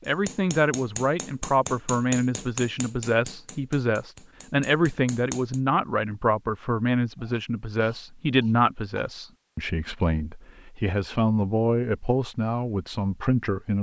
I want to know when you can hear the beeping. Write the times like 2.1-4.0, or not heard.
not heard.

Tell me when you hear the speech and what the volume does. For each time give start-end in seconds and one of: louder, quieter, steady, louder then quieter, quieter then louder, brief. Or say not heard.
0.1-13.7 steady.